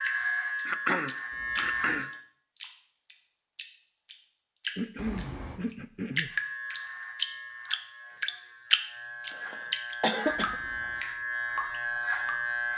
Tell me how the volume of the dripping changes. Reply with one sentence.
The loudness of the dripping goes up, then down.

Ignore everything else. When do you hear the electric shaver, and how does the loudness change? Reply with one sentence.
The electric shaver can be heard briefly from 0.0 to 2.2 s; and from 6.2 to 12.7 s, getting quieter then louder.